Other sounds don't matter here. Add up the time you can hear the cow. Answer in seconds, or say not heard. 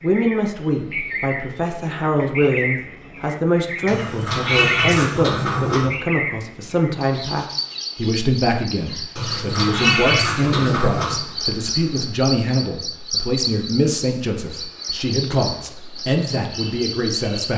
not heard.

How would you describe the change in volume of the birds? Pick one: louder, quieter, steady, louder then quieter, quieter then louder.
steady.